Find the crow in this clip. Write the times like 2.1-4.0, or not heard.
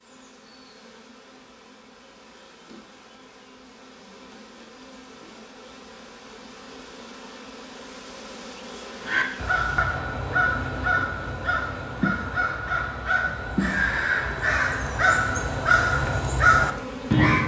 9.0-17.4.